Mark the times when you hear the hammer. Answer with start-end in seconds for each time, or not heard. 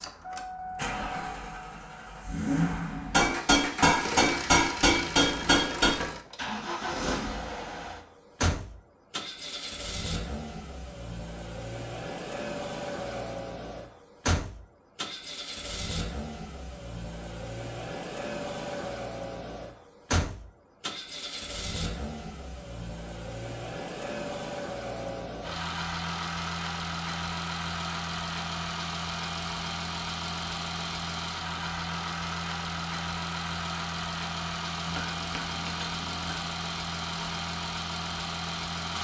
3.1-6.0, 34.9-36.5.